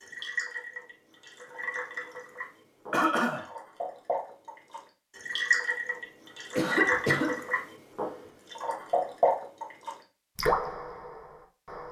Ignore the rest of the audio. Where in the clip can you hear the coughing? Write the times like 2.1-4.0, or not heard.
2.9-3.5, 6.5-7.4.